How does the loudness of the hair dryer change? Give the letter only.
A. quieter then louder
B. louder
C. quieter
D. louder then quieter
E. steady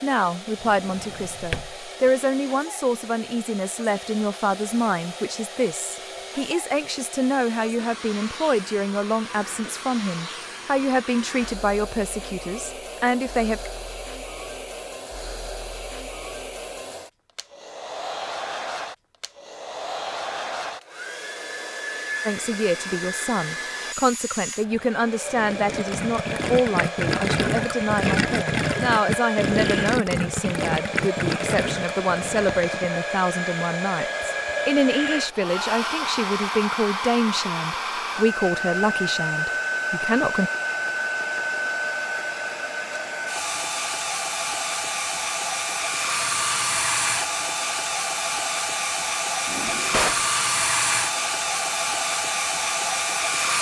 B.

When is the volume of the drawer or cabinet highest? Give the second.
50 s.